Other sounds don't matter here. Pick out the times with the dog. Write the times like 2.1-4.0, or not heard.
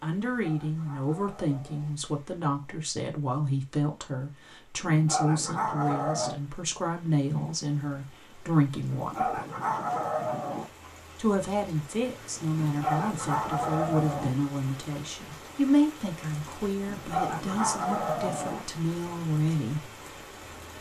0.3-1.9, 4.8-6.3, 8.9-10.7, 12.6-14.3, 16.9-18.6.